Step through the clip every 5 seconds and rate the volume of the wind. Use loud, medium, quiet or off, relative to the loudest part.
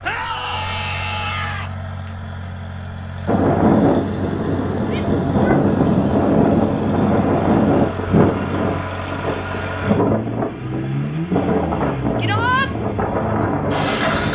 loud, loud, medium.